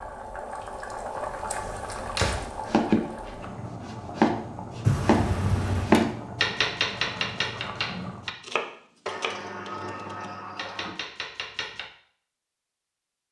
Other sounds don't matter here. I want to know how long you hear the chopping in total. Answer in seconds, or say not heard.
10 s.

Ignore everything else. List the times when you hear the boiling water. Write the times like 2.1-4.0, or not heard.
0.0-8.4.